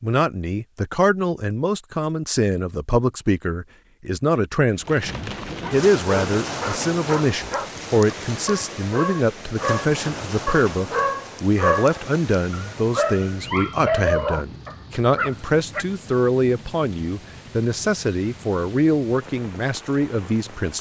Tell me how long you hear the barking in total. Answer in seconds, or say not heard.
10 s.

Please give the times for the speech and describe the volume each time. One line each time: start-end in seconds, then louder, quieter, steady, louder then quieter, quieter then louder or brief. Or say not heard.
0.0-20.7 steady.